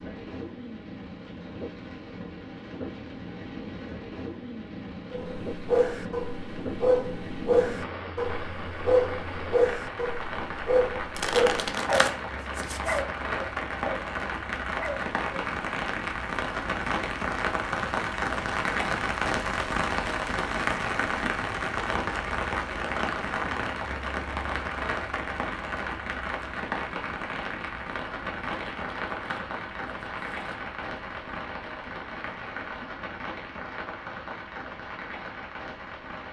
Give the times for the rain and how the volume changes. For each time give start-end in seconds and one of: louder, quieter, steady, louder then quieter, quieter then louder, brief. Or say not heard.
0.0-36.2 louder then quieter.